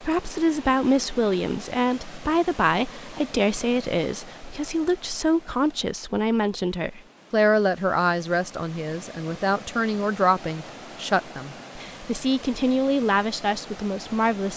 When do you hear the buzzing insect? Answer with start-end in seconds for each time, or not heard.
not heard.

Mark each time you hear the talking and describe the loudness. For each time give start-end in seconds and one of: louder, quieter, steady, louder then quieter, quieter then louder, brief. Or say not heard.
0.0-14.5 steady.